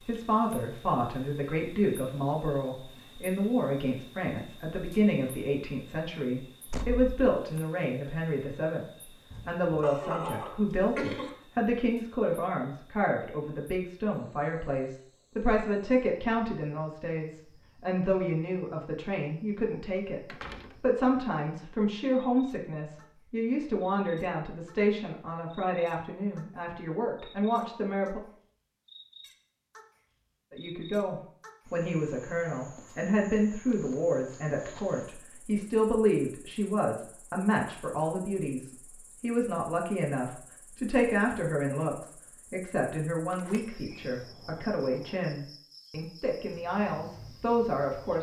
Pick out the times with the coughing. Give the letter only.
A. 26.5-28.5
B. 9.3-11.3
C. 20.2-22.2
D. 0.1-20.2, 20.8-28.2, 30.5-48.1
B.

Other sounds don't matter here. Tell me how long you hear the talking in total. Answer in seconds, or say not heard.
45 s.